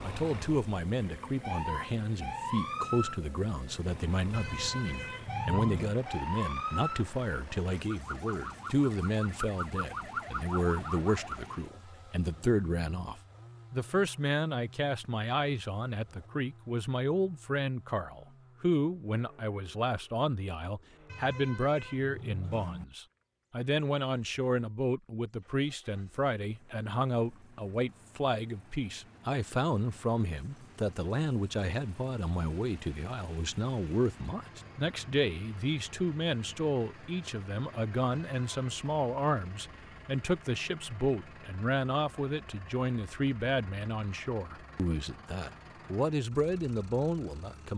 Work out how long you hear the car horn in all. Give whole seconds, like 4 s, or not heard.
4 s.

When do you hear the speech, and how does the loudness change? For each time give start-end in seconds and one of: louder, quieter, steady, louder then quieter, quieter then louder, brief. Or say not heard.
0.0-47.7 steady.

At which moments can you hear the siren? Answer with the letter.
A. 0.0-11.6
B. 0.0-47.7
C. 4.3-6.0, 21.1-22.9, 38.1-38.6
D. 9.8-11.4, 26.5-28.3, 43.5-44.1
A.